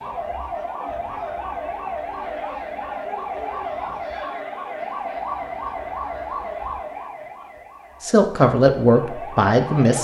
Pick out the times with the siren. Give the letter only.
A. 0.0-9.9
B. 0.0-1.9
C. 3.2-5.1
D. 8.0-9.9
A.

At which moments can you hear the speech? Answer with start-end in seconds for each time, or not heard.
8.0-9.9.